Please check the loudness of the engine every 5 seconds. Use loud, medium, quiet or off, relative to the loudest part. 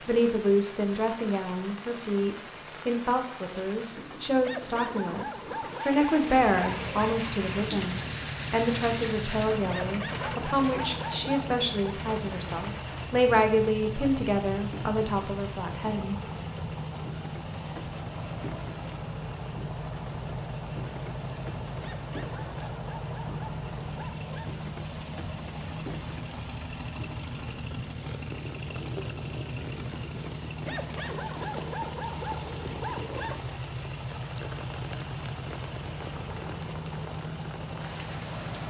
quiet, loud, loud, loud, loud, loud, loud, loud.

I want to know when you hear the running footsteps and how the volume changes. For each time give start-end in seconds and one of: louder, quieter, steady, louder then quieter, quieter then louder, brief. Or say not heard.
not heard.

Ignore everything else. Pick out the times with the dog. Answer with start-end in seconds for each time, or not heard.
4.4-7.2, 9.7-11.9, 21.8-24.6, 30.6-33.4.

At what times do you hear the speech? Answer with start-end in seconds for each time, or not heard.
0.1-16.1.